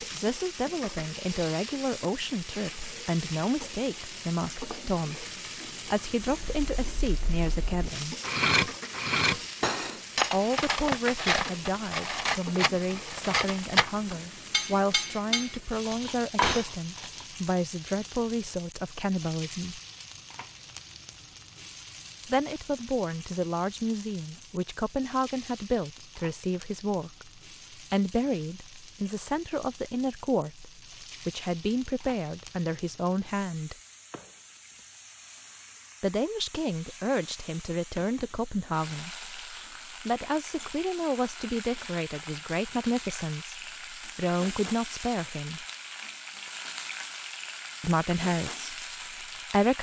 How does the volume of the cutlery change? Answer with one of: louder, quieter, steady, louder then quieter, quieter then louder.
steady.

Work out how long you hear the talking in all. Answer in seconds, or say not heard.
41 s.